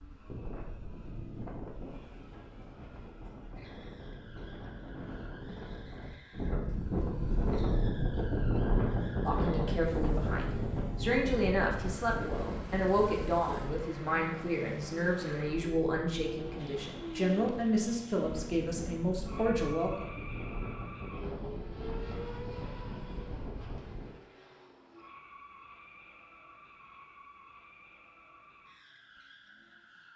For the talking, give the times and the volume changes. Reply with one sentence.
The talking can be heard from 9.2 to 20.1 s, at a steady volume.